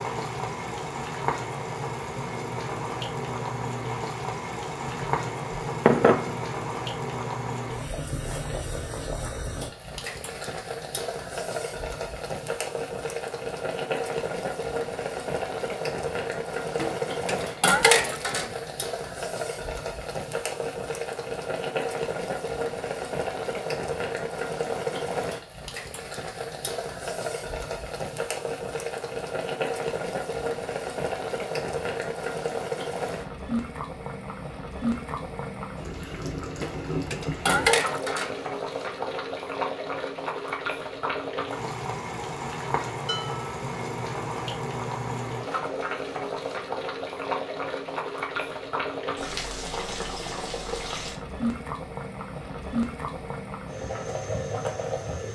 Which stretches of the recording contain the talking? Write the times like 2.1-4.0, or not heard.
not heard.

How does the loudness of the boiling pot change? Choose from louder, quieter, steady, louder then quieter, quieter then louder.
steady.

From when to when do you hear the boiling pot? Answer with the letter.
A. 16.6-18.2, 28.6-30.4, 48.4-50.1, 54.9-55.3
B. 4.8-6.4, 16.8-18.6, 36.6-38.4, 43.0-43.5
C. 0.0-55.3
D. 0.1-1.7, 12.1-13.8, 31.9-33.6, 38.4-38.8
C.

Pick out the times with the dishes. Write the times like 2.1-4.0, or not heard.
4.8-6.4, 16.8-18.6, 36.6-38.4, 43.0-43.5.